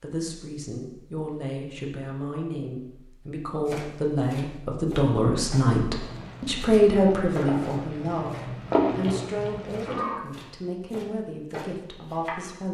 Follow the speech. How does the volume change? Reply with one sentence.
The loudness of the speech goes up, then down.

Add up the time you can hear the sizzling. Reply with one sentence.
The sizzling can be heard for 4 seconds in total.